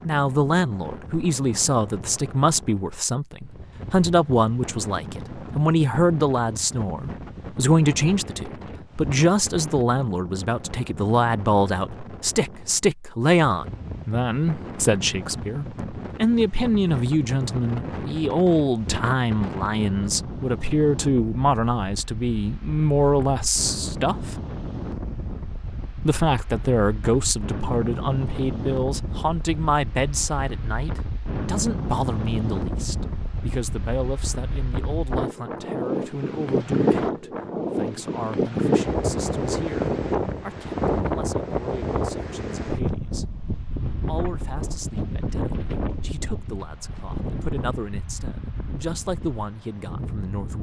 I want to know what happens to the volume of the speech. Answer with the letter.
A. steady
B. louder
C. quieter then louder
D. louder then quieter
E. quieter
E.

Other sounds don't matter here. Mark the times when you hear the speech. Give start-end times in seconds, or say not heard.
0.1-24.4, 26.0-43.2, 44.0-50.5.